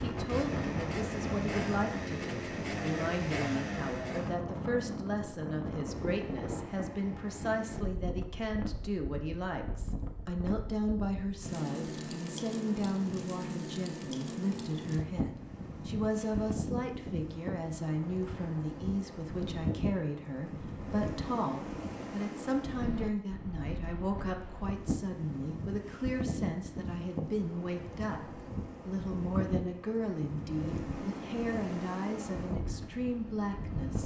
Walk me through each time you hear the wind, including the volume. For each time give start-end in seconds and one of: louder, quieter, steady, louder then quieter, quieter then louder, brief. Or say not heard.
0.0-34.0 steady.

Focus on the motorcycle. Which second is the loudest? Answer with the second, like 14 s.
3 s.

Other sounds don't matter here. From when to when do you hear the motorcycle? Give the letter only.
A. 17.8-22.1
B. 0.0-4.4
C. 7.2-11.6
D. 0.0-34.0
B.